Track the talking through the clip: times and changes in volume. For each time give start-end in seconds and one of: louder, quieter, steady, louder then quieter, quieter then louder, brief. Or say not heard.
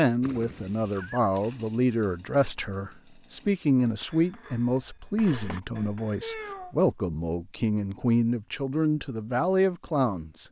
0.0-10.4 steady.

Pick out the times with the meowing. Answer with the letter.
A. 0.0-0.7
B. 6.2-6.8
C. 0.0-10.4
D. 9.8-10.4
B.